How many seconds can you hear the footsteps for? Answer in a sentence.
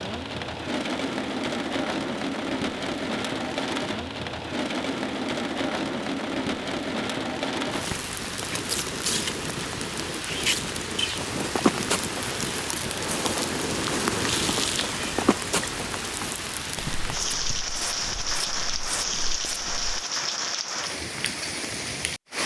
The footsteps can be heard for 9 seconds in total.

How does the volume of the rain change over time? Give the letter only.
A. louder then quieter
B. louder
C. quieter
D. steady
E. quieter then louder
D.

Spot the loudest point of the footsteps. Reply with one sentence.
The loudest moment of the footsteps is at 12 seconds.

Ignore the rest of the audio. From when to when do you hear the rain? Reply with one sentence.
You can hear the rain from 0.0 to 22.4 s.